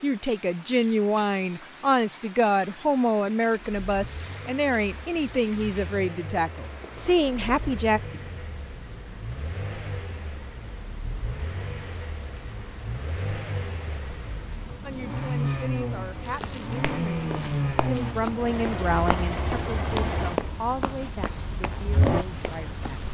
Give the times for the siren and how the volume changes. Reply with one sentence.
The siren can't be heard in this clip.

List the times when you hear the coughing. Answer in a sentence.
The coughing can't be heard in this clip.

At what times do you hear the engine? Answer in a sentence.
The engine can be heard from 3.8 to 23.0 s.